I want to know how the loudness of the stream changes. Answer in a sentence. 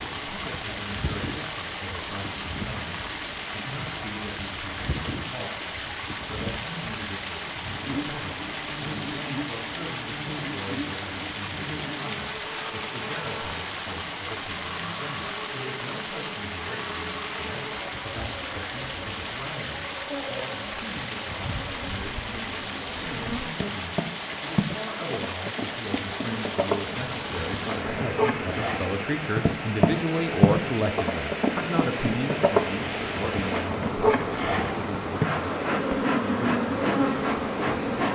The loudness of the stream stays about the same.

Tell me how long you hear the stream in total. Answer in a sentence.
You can hear the stream for 38 seconds altogether.